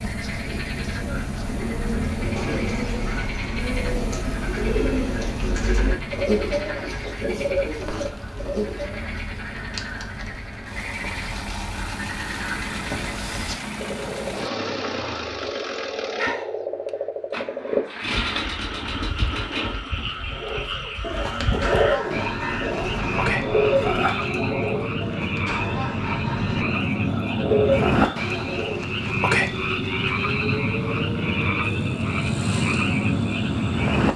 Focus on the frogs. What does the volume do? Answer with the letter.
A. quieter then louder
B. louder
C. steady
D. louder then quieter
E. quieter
B.